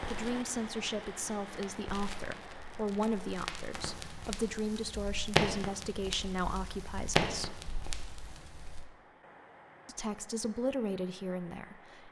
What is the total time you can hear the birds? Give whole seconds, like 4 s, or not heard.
not heard.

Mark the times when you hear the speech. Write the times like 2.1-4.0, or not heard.
0.1-7.6, 9.8-12.0.